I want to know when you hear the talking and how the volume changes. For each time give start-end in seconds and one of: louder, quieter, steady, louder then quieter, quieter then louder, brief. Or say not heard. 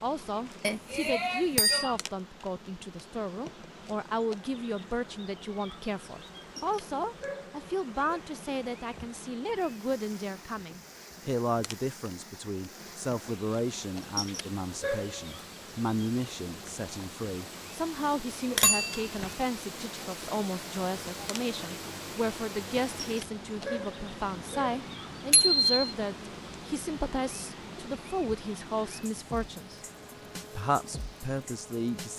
0.0-29.8 steady
30.6-32.1 brief.